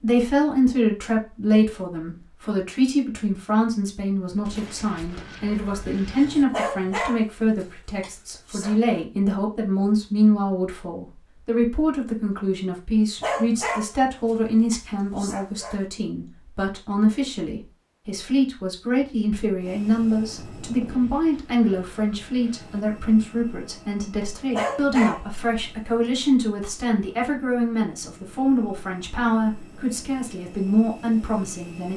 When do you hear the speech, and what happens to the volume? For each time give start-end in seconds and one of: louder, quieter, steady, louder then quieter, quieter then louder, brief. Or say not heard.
0.0-31.9 steady.